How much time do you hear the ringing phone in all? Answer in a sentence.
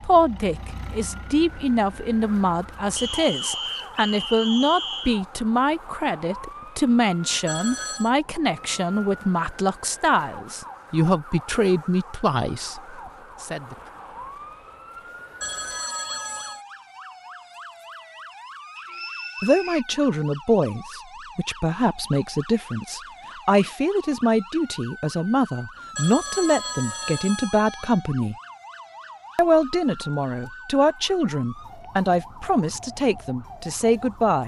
You can hear the ringing phone for 4 seconds altogether.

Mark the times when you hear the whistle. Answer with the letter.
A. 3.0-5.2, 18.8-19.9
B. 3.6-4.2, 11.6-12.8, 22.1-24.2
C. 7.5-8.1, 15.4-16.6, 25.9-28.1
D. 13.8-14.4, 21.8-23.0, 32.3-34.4
A.